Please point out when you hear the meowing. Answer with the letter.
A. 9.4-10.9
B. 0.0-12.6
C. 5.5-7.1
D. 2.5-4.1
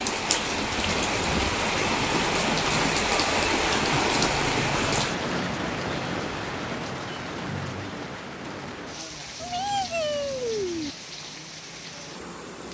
A.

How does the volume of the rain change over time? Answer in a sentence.
The loudness of the rain goes down.